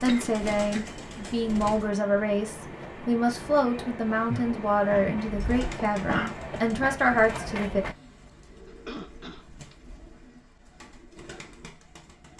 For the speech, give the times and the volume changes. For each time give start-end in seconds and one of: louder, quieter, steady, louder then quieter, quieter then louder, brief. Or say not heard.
0.0-7.8 steady.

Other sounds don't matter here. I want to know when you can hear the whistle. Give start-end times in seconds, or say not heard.
not heard.